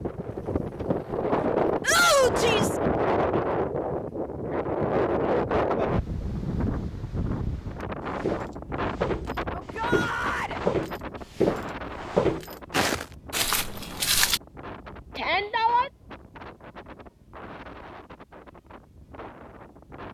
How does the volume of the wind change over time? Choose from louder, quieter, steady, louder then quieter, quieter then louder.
quieter.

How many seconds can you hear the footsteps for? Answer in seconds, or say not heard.
6 s.